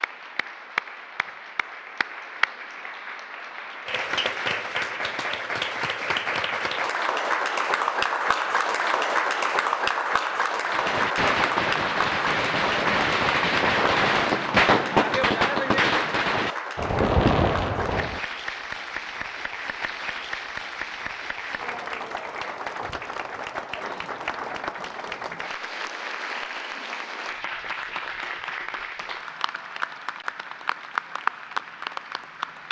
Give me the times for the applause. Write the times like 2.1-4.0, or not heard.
0.0-32.6.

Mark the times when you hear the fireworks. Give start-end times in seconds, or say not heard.
10.7-18.2.